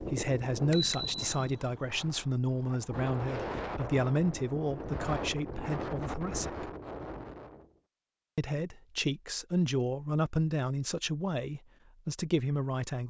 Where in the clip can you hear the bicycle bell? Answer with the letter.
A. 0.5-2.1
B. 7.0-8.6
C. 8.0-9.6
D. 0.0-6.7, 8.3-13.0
A.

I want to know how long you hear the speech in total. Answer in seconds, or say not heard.
11 s.